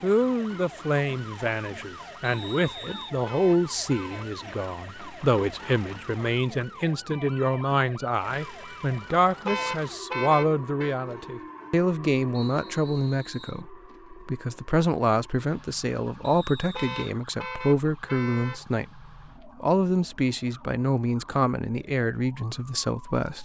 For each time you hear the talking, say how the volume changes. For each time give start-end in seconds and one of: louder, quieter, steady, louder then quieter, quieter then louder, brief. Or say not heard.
0.0-23.4 steady.